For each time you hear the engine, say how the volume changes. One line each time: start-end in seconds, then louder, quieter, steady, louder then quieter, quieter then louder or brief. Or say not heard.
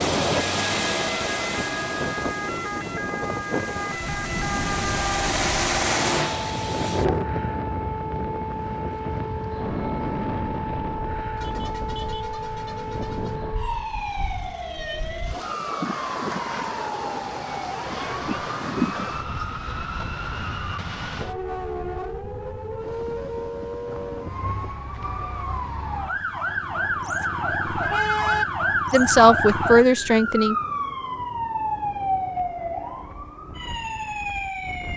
0.0-7.2 quieter then louder.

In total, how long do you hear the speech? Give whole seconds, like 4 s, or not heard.
2 s.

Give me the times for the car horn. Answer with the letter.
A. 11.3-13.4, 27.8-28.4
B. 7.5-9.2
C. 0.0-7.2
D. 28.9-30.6
A.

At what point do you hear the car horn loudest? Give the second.
28 s.